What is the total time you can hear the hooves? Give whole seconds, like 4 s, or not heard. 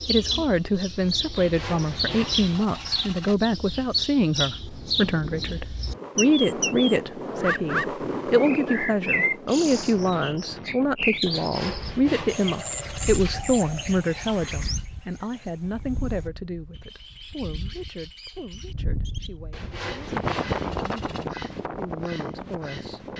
not heard.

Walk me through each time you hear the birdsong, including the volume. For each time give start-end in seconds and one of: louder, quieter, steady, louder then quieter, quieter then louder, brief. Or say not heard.
0.0-23.1 quieter.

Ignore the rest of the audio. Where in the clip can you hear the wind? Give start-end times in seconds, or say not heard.
4.5-23.1.